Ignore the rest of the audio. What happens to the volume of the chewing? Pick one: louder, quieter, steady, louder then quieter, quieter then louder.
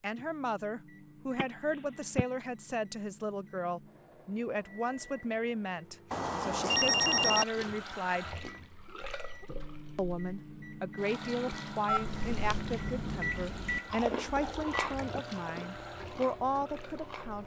louder then quieter.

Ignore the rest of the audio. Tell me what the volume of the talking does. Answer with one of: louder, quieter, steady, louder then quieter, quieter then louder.
steady.